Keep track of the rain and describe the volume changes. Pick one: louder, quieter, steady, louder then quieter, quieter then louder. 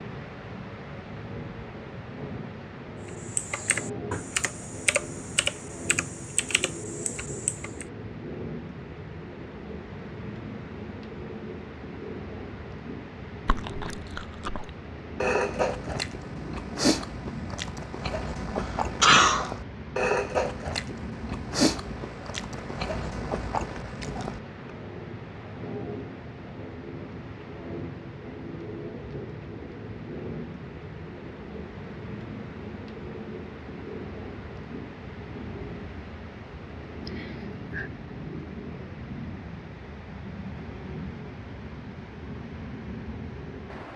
steady.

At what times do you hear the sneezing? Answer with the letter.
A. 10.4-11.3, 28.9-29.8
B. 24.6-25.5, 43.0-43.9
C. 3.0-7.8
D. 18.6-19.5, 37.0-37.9
D.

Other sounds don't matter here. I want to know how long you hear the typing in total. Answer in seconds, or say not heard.
5 s.